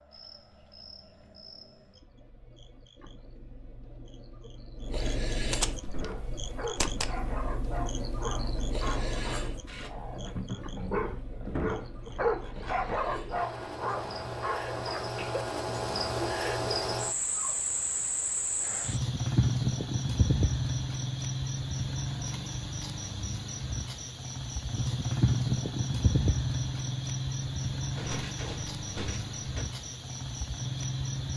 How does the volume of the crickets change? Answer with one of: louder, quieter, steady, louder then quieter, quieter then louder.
louder.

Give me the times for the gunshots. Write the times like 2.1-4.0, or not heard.
5.3-7.1, 27.9-29.6.